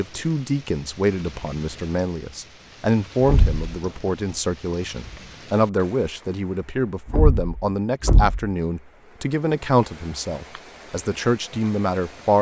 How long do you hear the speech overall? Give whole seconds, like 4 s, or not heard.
12 s.